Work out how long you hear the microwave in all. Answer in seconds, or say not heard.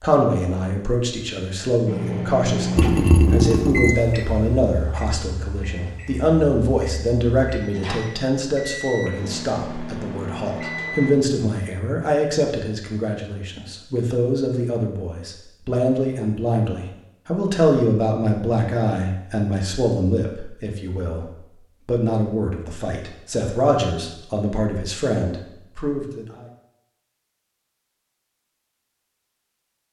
9 s.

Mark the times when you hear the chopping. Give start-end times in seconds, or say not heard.
not heard.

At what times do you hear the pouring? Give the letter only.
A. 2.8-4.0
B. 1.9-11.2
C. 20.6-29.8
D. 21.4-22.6
A.